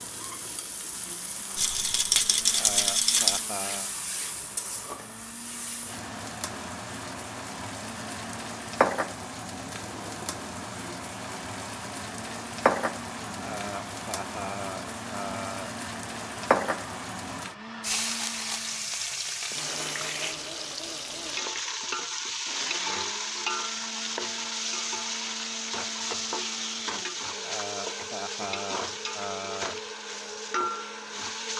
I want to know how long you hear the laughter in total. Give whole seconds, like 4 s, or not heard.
6 s.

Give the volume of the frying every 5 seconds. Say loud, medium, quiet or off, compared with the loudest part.
medium, loud, loud, loud, loud, loud, loud.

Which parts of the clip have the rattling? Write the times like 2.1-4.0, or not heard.
1.6-3.5, 18.0-18.6.